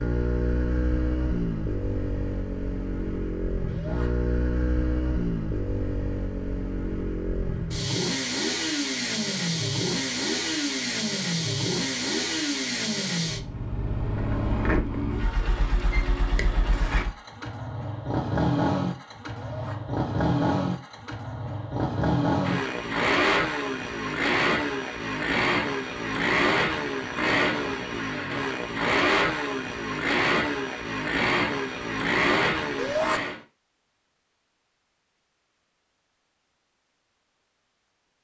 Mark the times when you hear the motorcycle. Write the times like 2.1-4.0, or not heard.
0.0-33.4.